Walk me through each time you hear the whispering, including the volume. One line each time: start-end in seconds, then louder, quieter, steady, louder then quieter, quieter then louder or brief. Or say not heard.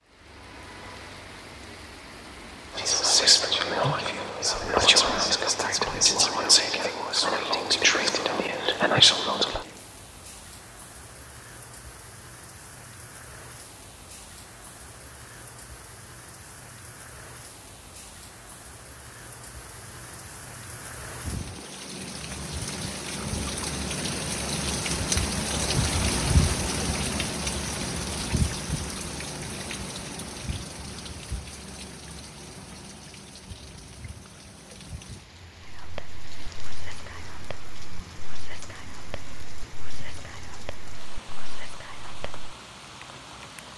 2.8-9.7 steady
35.6-42.5 steady.